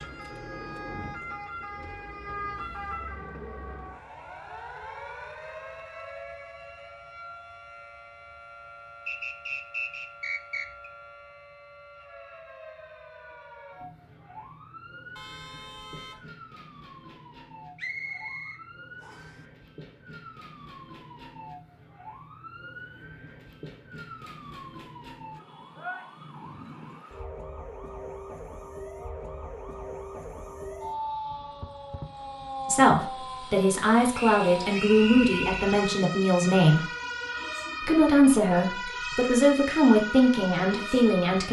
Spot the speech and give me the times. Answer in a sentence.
The speech can be heard from 32.6 to 36.9 s and from 37.8 to 41.4 s.